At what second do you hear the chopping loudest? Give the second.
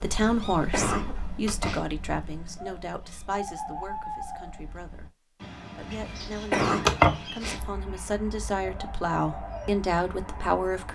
7 s.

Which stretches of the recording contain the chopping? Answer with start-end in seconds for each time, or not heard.
1.4-2.2, 6.8-7.7.